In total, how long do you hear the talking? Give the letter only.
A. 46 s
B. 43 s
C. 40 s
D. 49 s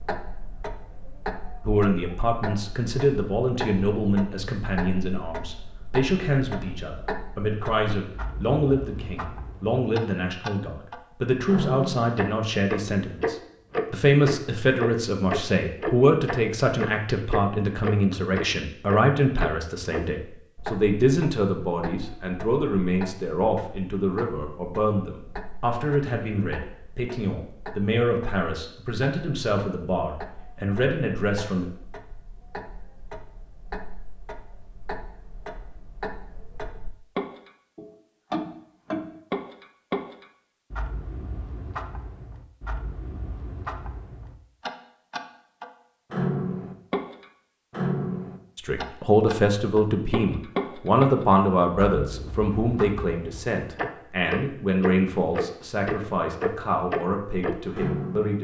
C.